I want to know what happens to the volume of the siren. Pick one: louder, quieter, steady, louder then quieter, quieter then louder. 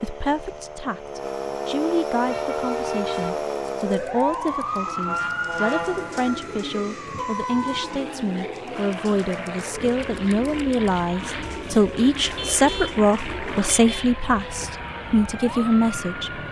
quieter.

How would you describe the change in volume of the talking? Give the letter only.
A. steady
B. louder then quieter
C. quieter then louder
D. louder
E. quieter
D.